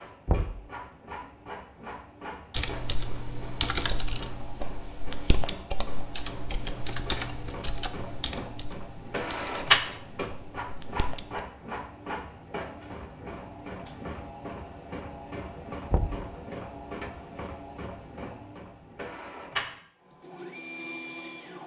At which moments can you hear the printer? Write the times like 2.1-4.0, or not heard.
0.0-21.6.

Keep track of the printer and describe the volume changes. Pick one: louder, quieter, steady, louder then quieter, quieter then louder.
louder then quieter.